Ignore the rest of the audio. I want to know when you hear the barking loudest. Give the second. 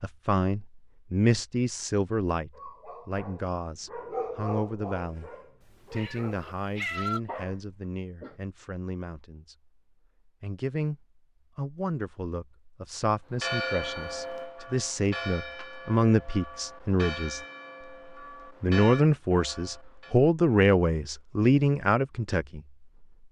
4 s.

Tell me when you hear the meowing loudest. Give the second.
7 s.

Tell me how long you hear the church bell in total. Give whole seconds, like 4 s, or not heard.
7 s.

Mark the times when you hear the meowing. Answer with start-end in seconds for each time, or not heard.
5.6-7.2.